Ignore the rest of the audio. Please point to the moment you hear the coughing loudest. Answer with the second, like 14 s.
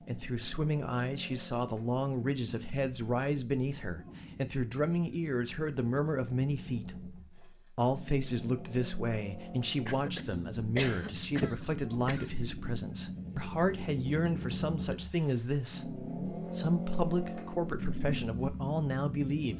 11 s.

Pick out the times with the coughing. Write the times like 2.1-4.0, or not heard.
9.8-12.3.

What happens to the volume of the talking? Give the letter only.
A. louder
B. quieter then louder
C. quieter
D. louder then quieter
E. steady
E.